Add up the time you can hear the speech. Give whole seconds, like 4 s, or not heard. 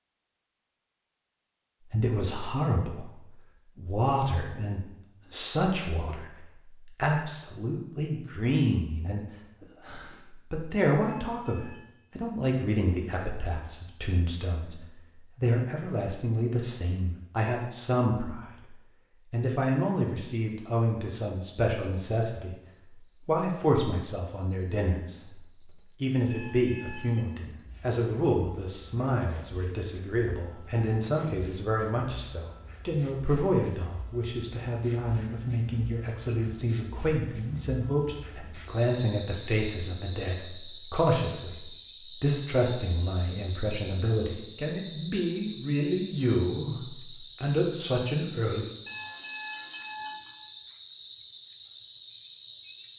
47 s.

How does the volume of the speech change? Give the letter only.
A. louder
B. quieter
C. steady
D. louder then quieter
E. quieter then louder
C.